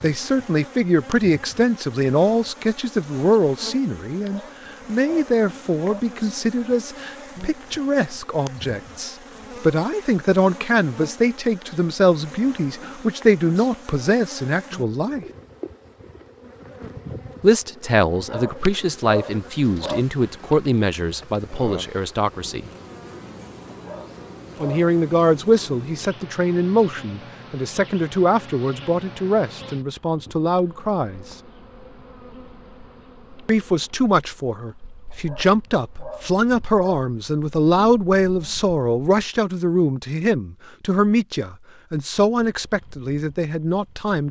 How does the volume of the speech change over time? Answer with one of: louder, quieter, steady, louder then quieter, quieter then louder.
steady.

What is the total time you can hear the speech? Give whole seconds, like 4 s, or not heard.
38 s.